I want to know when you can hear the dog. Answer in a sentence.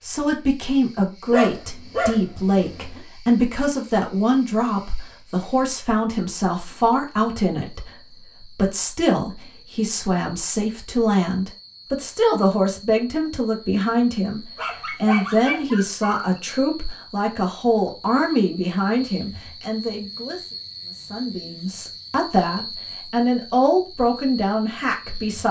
You can hear the dog from 1.3 to 3.0 s and from 14.6 to 16.4 s.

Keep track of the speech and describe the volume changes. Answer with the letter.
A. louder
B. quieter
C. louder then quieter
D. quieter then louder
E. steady
E.